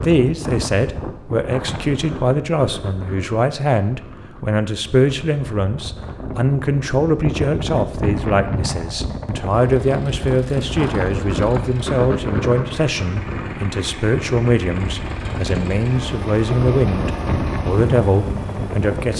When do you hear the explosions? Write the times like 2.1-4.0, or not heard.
not heard.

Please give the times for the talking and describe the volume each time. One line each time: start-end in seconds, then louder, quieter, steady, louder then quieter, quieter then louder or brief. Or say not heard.
0.0-19.1 steady.